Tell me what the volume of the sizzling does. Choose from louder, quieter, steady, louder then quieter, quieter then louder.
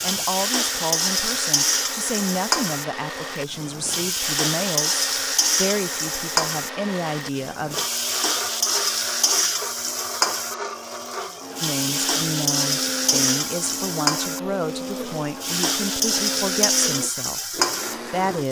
steady.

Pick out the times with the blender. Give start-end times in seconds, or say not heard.
0.0-18.4.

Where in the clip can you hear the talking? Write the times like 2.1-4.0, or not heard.
0.0-7.8, 11.6-18.4.